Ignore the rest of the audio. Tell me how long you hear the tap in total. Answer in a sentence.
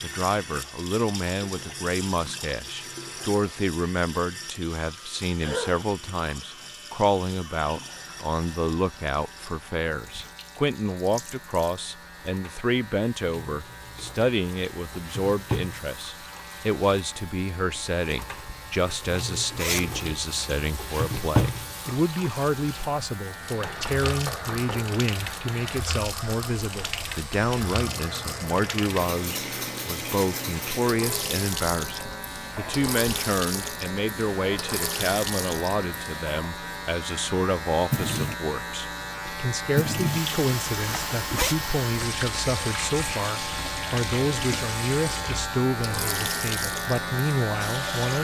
The tap can be heard for 48 seconds in total.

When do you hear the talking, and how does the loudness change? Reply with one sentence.
The talking can be heard from 0.0 to 48.1 s, at a steady volume.